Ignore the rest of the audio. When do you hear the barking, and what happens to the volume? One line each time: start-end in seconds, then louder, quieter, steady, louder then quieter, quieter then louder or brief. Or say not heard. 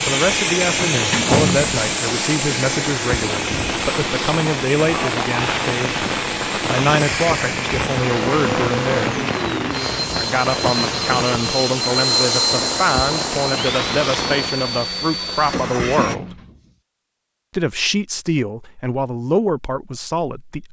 not heard.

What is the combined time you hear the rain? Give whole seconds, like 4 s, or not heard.
15 s.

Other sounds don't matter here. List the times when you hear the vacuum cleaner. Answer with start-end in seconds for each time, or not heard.
0.0-16.1.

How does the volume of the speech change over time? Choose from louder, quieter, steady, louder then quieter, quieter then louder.
steady.